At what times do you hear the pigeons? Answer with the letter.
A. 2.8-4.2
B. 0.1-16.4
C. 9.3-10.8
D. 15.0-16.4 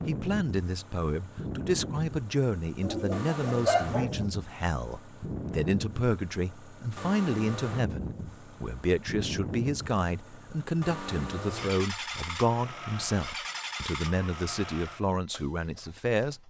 A.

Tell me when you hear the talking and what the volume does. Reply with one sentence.
The talking can be heard from 0.1 to 16.4 s, at a steady volume.